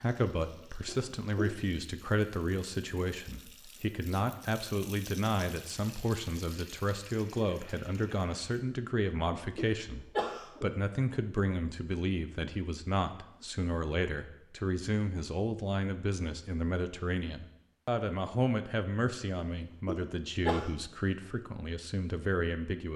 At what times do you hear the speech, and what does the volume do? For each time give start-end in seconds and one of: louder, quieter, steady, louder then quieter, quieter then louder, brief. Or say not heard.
0.0-22.9 steady.